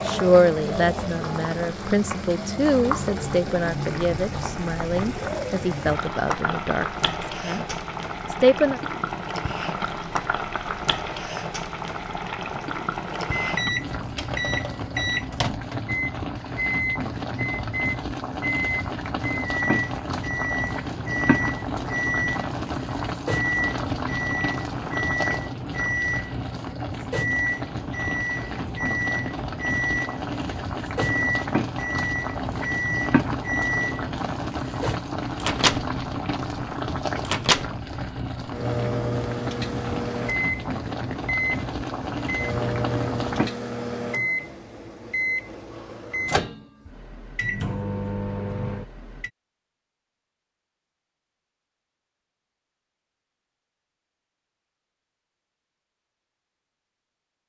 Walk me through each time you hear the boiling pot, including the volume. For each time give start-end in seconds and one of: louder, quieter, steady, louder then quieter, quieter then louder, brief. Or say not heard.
0.0-43.5 steady.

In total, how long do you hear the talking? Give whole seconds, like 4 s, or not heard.
9 s.